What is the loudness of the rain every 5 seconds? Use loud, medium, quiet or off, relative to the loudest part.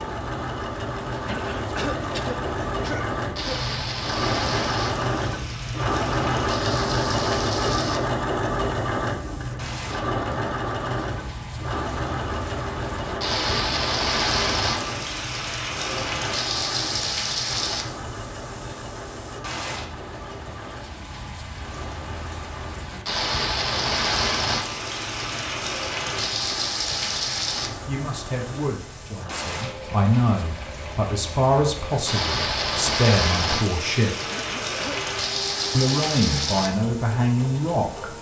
medium, medium, loud, loud, loud, loud, loud, loud.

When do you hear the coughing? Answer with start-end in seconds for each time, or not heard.
1.2-3.6, 34.2-35.0.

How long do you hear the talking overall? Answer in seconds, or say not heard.
9 s.